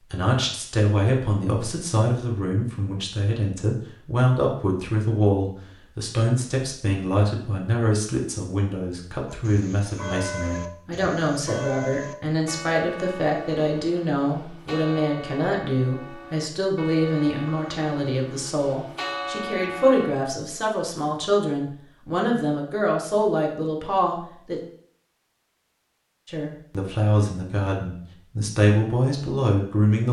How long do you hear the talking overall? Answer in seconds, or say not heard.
28 s.